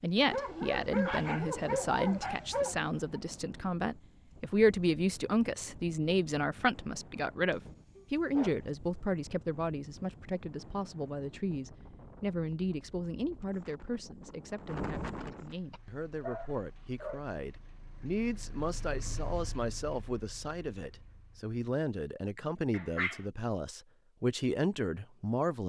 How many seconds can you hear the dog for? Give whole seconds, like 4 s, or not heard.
6 s.